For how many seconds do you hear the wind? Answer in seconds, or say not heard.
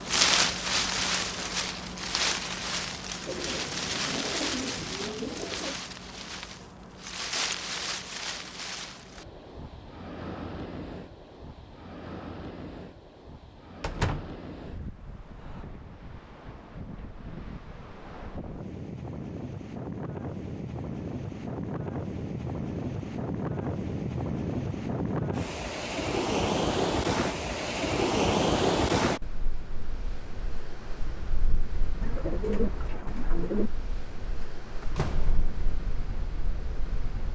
37 s.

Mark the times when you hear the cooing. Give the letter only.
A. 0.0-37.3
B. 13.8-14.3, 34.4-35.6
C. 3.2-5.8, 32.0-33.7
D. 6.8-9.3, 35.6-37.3
C.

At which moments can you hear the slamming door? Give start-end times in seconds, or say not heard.
13.8-14.3, 34.4-35.6.